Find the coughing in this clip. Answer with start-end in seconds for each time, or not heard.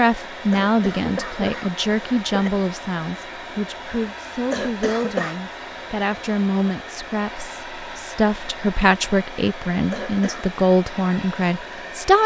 0.5-2.5, 4.5-5.3, 9.9-10.5.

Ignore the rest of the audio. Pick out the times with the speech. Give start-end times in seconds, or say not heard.
0.0-12.2.